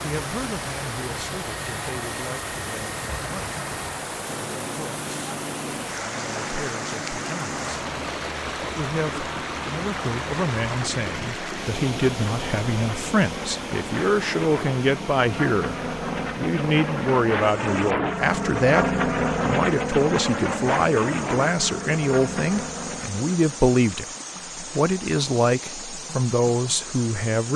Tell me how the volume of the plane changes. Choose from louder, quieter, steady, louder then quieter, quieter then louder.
louder.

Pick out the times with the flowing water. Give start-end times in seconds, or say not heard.
0.0-27.5.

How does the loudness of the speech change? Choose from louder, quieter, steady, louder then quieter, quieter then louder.
louder.